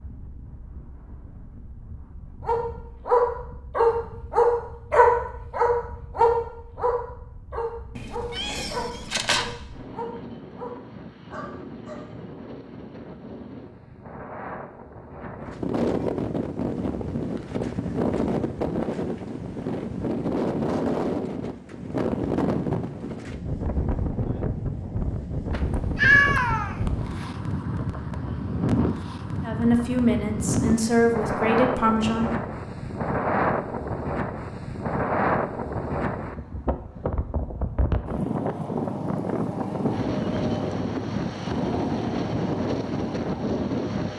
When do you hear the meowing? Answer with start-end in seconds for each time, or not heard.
8.0-9.5, 25.5-27.2.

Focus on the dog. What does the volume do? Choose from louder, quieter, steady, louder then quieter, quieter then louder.
quieter.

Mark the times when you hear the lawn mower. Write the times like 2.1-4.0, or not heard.
38.3-44.1.